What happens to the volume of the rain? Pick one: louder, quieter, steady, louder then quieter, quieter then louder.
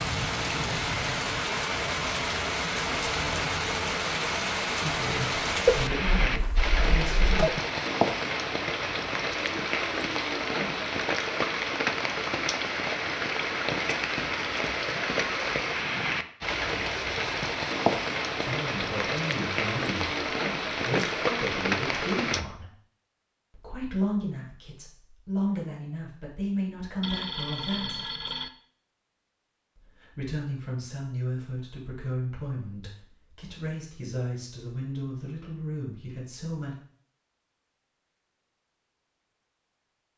steady.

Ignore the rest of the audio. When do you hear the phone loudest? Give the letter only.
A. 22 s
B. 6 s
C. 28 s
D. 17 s
B.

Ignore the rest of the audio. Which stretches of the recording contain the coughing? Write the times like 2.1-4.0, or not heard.
not heard.